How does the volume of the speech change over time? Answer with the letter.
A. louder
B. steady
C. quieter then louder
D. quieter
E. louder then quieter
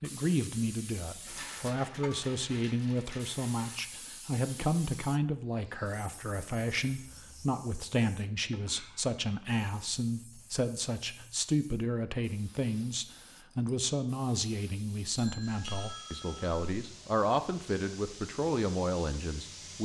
B.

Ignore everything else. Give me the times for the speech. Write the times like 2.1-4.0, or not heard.
0.0-19.8.